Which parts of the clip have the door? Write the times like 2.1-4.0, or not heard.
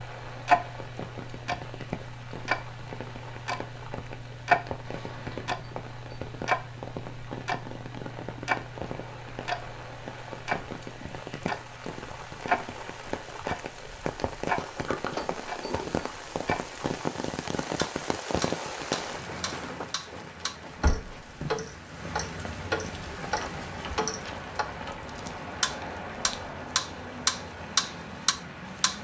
4.8-5.5, 14.4-16.1, 23.4-25.0.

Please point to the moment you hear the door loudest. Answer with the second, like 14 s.
15 s.